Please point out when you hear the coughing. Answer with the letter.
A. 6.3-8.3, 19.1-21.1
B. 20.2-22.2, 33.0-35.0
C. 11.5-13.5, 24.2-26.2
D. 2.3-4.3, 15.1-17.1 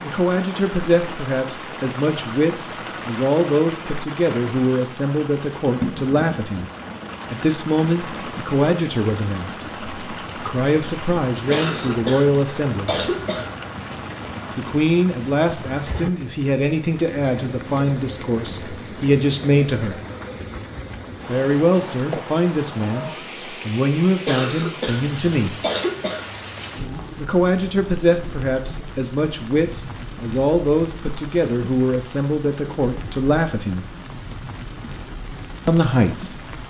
C.